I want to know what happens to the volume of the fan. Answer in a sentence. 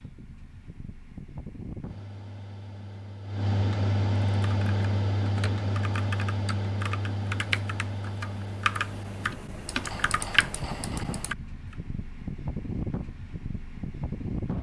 The loudness of the fan goes up, then down.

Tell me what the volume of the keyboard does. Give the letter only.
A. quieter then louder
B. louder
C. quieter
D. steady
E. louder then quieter
B.